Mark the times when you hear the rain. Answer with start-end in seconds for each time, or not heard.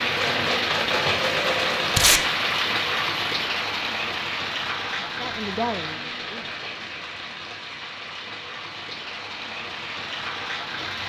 0.0-11.0.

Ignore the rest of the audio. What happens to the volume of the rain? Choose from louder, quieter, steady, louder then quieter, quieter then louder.
quieter.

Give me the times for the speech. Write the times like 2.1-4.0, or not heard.
5.0-6.6.